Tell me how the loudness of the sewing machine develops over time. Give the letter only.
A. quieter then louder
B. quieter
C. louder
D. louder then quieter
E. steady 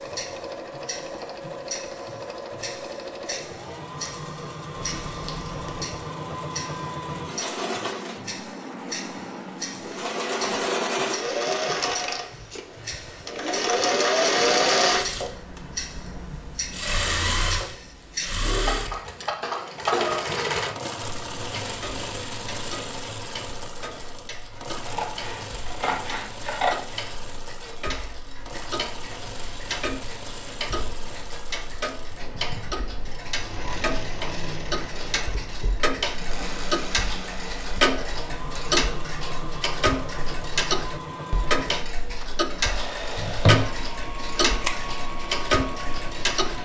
D.